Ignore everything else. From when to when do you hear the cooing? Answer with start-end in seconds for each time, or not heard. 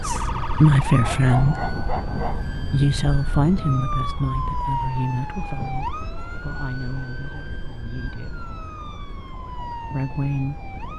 not heard.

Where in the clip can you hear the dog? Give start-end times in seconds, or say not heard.
1.0-2.5.